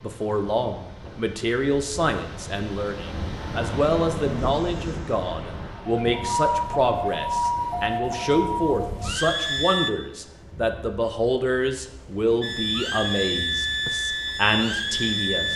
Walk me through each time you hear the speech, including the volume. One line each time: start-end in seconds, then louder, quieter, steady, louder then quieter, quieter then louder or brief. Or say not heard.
0.0-15.5 steady.